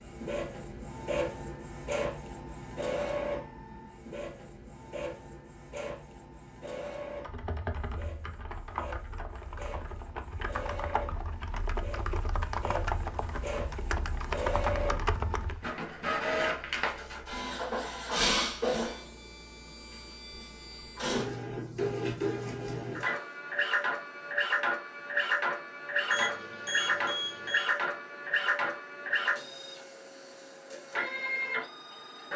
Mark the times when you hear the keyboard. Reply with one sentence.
The keyboard can be heard from 7.0 to 15.7 s.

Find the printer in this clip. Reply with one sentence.
You can hear the printer from 0.0 to 32.3 s.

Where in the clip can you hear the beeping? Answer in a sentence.
The beeping can be heard from 26.1 to 27.7 s.